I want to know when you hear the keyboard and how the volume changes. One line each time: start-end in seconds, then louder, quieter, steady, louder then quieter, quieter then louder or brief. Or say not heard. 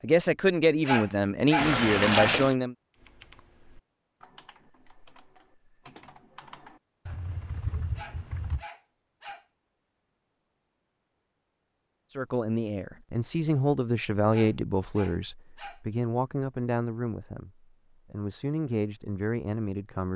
2.9-8.7 louder.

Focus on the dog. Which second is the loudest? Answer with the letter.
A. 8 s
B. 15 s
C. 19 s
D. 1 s
D.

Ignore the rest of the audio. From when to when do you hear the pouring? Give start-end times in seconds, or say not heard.
1.6-2.5.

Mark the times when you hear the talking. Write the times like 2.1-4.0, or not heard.
0.0-2.8, 12.2-20.1.